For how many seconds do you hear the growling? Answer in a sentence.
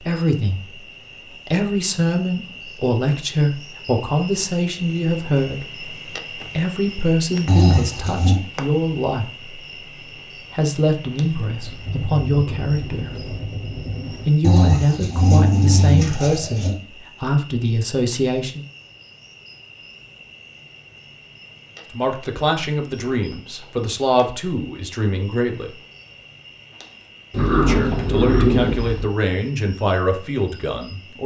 You can hear the growling for 5 seconds altogether.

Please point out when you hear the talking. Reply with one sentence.
You can hear the talking from 0.1 to 0.8 s, from 1.4 to 9.5 s, from 10.3 to 13.3 s, from 14.2 to 18.6 s, from 21.9 to 25.8 s and from 27.6 to 31.2 s.